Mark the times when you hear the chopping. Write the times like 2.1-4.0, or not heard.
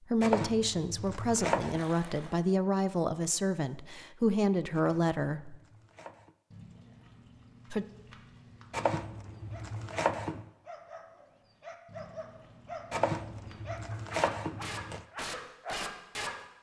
0.2-1.8, 4.7-6.3, 8.7-10.4, 12.9-15.0.